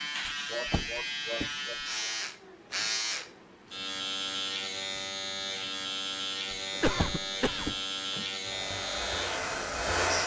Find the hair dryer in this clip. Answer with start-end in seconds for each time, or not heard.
8.4-10.2.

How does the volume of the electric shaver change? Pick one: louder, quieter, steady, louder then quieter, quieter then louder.
steady.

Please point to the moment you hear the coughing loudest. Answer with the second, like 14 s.
7 s.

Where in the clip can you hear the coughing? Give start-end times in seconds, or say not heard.
0.5-2.1, 6.7-7.8.